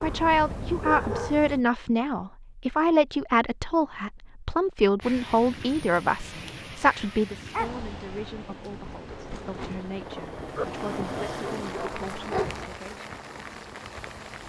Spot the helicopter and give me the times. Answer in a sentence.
The helicopter can be heard from 9.2 to 14.4 s.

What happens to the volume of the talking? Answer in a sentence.
The loudness of the talking goes down.